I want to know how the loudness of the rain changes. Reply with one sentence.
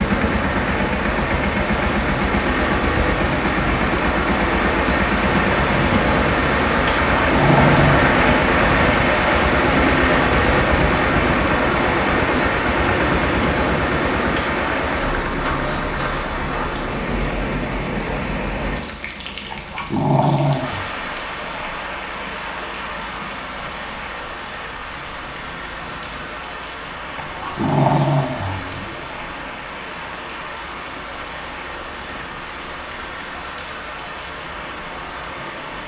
The loudness of the rain goes down.